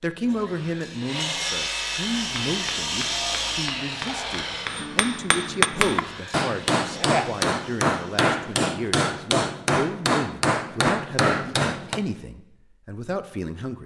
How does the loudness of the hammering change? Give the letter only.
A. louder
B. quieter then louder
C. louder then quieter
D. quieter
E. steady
A.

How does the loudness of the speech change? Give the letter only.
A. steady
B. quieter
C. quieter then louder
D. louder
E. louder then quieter
A.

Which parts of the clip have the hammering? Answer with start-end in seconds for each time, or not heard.
2.0-12.0.